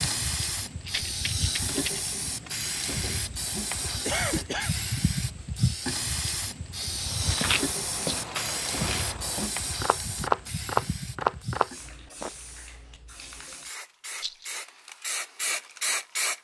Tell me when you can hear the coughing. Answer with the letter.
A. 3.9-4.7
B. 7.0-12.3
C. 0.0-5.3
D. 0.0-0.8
A.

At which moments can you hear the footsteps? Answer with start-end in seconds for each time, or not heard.
7.0-12.3.